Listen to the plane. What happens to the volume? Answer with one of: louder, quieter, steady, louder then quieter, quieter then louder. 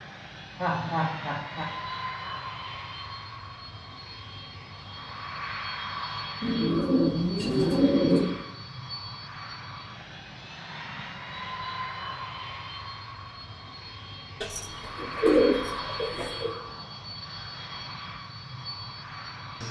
steady.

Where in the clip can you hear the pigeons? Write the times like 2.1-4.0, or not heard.
6.4-8.3, 14.4-16.5.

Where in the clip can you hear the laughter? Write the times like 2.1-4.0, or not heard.
0.6-1.7.